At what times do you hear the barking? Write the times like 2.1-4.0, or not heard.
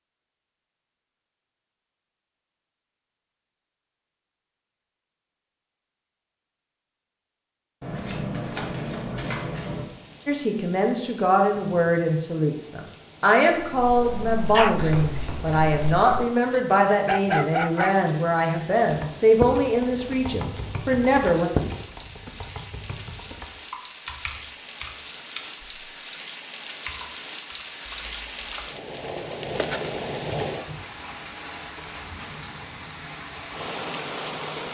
13.6-17.9.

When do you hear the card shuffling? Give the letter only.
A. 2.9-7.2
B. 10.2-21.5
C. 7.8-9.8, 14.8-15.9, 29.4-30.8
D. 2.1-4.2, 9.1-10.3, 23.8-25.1
C.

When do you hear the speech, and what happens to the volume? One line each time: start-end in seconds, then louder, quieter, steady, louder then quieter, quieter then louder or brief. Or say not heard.
10.2-21.5 steady.